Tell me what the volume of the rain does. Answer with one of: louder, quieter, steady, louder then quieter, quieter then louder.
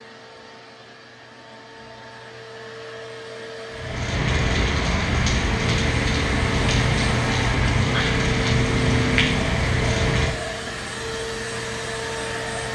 quieter.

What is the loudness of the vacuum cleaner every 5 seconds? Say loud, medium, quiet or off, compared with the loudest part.
medium, loud, loud.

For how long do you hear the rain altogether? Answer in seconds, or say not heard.
9 s.